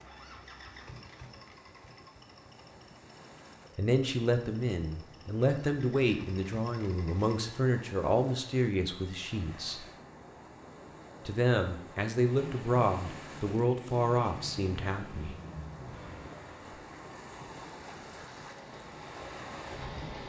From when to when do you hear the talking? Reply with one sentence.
You can hear the talking from 3.8 to 9.8 s and from 11.2 to 15.3 s.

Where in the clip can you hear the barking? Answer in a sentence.
The barking can't be heard in this clip.